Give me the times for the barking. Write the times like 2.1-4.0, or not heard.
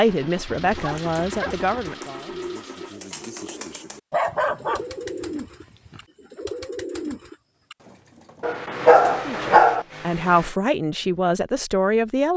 0.5-1.9, 4.1-6.0, 8.4-9.8.